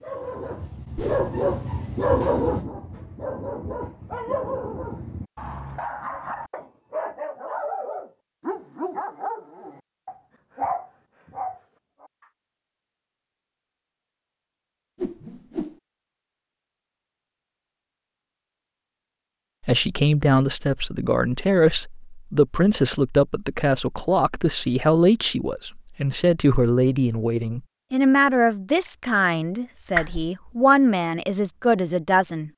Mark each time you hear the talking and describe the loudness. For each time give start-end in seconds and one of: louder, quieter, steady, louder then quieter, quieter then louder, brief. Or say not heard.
19.6-32.5 steady.